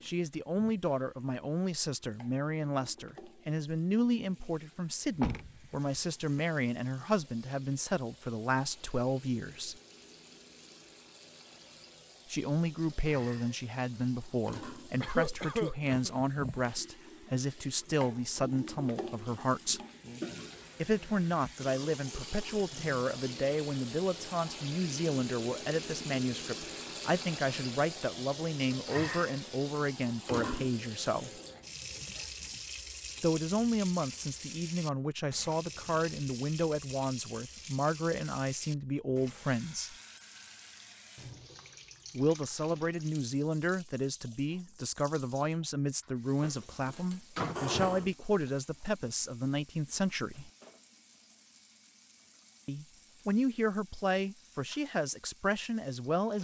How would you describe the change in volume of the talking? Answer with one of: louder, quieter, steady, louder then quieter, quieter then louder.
steady.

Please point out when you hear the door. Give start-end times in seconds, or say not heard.
5.2-6.4, 46.4-47.6.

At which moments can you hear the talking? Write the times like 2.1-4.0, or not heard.
0.0-9.8, 12.3-19.8, 20.8-31.3, 33.2-40.0, 42.1-50.5, 52.6-56.4.